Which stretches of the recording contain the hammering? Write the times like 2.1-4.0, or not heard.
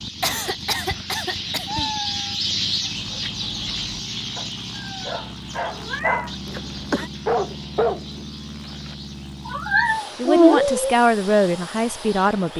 not heard.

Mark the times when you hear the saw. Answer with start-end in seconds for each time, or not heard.
not heard.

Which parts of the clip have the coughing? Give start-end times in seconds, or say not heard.
0.2-1.9, 6.5-7.1.